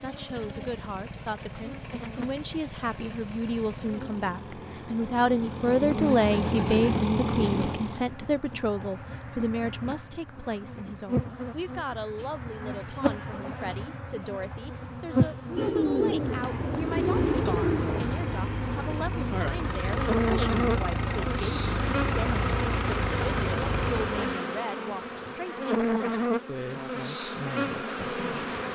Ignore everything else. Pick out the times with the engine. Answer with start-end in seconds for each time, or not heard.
0.0-8.1, 16.7-24.4.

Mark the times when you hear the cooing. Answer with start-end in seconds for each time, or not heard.
5.7-7.7, 15.6-18.1.